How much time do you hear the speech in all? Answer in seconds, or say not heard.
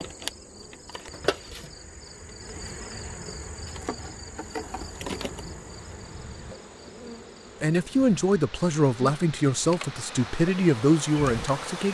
4 s.